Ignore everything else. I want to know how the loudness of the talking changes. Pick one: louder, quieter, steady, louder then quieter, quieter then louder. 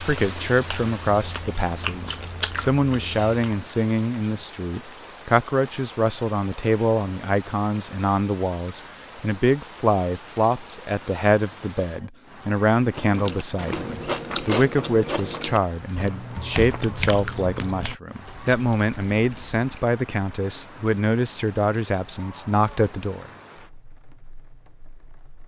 steady.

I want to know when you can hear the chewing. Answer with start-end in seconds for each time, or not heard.
0.0-3.7, 12.9-19.6.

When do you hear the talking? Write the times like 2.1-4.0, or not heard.
0.0-23.3.